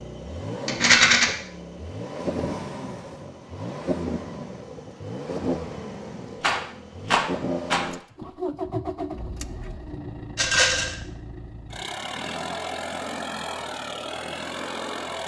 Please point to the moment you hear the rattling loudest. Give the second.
1 s.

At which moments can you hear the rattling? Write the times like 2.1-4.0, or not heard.
0.7-1.2, 6.4-7.8, 10.3-10.9.